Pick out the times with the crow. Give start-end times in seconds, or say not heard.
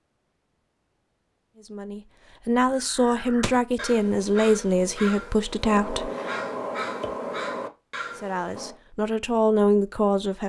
2.6-8.8.